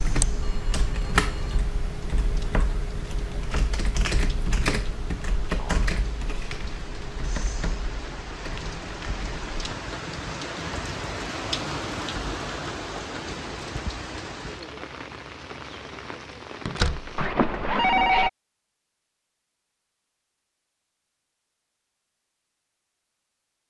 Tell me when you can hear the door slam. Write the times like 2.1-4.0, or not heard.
16.6-17.1.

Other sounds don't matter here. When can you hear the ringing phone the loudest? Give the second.
18 s.